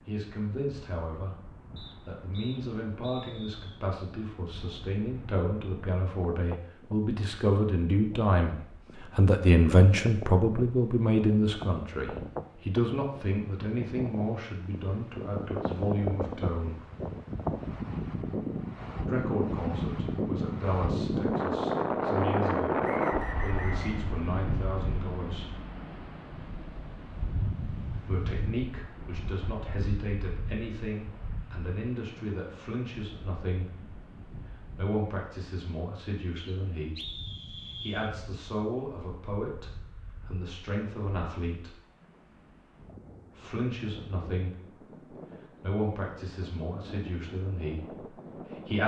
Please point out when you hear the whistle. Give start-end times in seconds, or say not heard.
1.8-3.6, 22.8-24.1, 36.4-38.1.